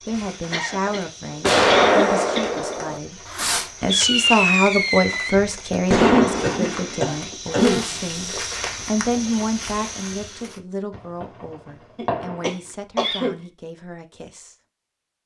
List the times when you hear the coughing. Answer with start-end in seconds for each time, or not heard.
0.5-2.8, 5.9-7.8, 11.9-13.3.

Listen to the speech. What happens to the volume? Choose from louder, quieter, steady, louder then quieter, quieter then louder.
louder then quieter.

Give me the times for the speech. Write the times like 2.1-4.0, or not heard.
0.1-3.1, 3.8-14.6.